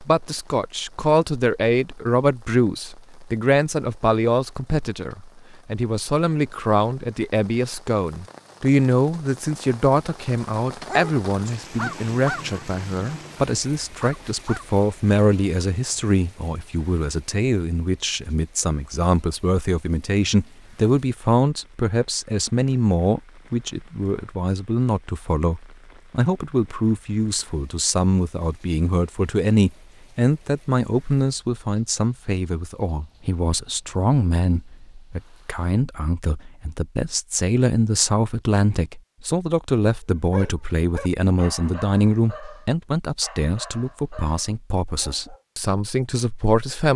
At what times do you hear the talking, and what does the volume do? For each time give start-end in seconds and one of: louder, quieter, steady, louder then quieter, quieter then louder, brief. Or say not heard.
0.0-46.9 steady.